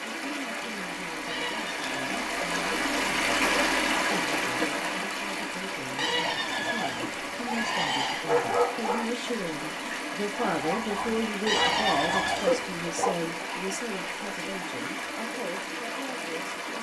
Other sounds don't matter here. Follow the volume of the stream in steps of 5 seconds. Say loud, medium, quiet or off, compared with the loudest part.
loud, medium, medium, medium.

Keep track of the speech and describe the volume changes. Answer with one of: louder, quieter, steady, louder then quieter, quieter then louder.
louder then quieter.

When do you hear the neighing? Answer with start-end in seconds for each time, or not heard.
1.2-2.4, 6.0-8.2, 11.4-12.8.